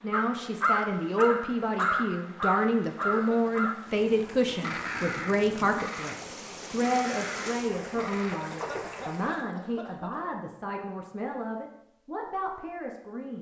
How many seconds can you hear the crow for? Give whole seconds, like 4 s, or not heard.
7 s.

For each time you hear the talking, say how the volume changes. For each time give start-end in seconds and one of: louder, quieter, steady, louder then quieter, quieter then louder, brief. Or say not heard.
0.0-13.3 quieter.